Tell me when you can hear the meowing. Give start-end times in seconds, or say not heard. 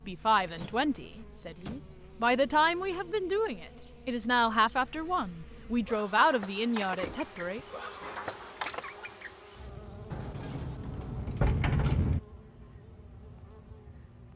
not heard.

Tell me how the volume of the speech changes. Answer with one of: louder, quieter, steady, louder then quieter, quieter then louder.
louder.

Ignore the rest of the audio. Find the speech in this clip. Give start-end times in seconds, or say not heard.
0.1-7.6.